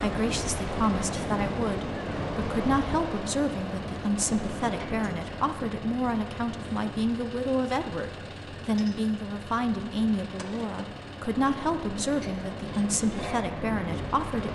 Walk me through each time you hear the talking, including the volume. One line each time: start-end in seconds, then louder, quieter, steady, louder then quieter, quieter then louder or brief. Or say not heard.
0.0-14.5 steady.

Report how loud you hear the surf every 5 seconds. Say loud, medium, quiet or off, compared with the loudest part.
loud, medium, medium.